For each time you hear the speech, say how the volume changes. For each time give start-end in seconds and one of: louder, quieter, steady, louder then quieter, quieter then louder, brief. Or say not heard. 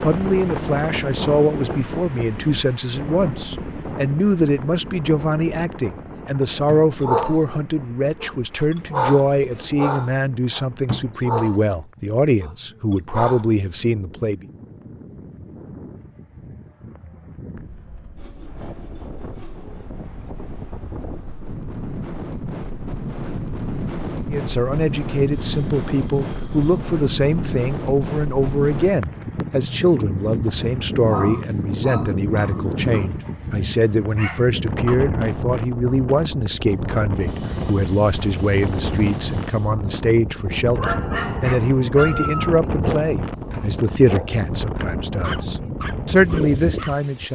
0.0-14.4 steady
24.3-47.2 steady.